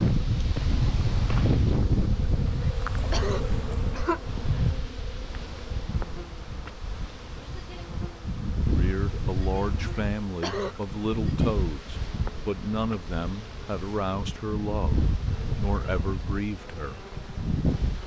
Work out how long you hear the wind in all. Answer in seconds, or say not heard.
18 s.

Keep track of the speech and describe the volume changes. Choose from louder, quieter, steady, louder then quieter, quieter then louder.
steady.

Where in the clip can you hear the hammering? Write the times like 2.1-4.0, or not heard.
not heard.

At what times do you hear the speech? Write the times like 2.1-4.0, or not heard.
8.7-17.0.